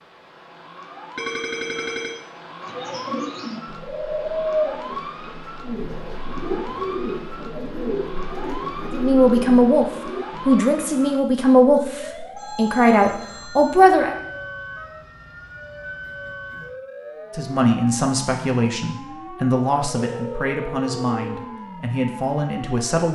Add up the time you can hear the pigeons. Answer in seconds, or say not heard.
8 s.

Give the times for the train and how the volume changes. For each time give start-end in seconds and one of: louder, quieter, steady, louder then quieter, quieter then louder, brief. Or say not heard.
not heard.